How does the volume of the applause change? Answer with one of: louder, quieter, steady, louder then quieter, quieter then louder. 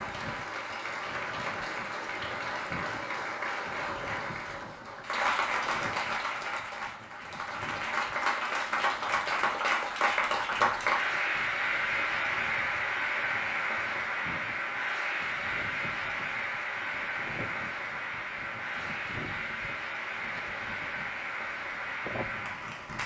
louder then quieter.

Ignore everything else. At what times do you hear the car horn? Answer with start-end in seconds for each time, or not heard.
not heard.